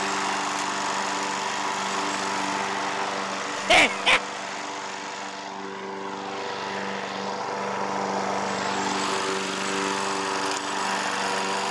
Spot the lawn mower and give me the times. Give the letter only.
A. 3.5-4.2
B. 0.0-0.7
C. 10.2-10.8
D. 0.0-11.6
D.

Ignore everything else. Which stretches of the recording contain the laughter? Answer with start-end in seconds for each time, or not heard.
3.5-4.2.